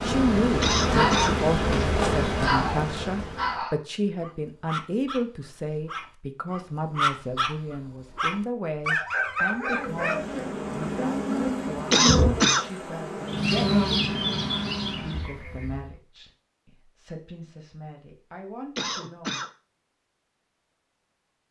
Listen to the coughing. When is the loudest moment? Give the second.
12 s.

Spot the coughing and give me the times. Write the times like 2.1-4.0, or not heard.
0.6-1.4, 11.9-12.7, 18.8-19.5.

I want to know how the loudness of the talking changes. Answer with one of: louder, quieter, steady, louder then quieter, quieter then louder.
quieter.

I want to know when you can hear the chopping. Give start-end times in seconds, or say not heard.
not heard.